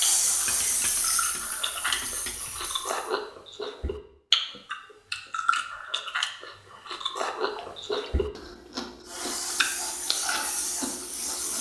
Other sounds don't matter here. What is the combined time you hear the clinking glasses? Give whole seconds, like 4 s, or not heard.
3 s.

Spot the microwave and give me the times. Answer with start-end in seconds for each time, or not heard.
not heard.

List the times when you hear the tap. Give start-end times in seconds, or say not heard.
0.0-3.1, 9.1-11.5.